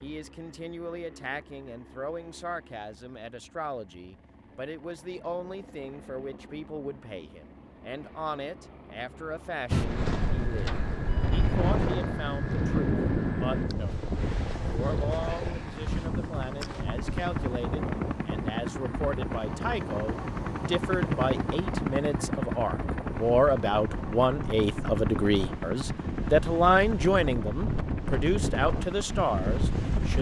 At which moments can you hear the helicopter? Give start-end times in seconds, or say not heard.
0.0-30.1.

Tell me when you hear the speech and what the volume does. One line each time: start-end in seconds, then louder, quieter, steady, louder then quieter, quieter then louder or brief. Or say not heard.
0.0-30.1 louder.